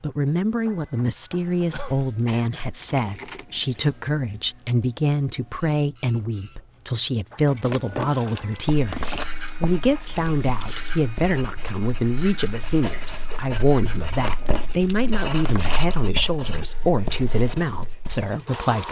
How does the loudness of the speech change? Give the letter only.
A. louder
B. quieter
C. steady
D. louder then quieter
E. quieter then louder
C.